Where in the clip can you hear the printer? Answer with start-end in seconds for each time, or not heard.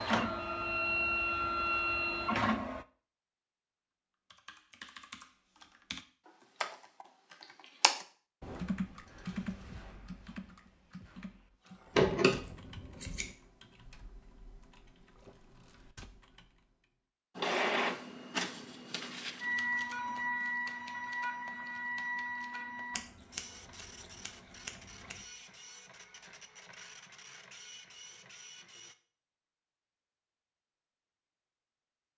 0.0-2.9, 17.4-28.9.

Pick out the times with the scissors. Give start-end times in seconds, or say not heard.
11.9-13.3, 22.9-25.1.